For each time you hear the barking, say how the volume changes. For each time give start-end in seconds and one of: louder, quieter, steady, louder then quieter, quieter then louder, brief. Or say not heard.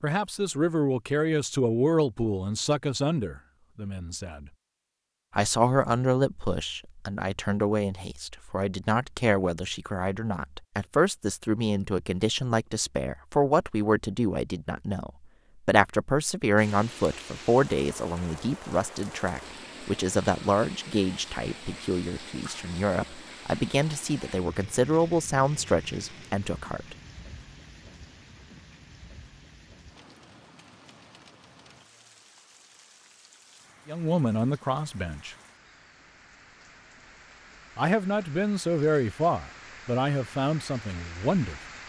not heard.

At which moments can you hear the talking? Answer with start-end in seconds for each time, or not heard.
0.0-4.5, 5.3-26.9, 33.9-35.4, 37.8-41.6.